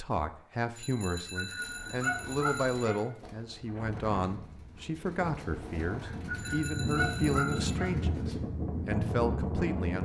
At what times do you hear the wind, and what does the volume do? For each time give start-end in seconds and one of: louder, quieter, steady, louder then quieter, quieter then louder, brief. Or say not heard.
3.5-9.9 louder.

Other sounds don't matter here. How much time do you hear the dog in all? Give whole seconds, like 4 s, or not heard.
4 s.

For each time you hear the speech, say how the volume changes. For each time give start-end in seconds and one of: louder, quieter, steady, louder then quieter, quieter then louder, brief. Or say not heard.
0.0-9.9 steady.